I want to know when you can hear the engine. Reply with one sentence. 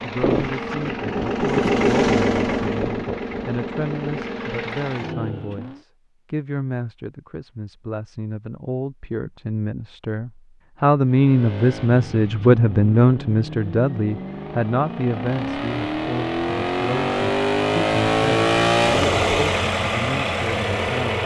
The engine can be heard from 0.0 to 5.8 s and from 11.1 to 21.2 s.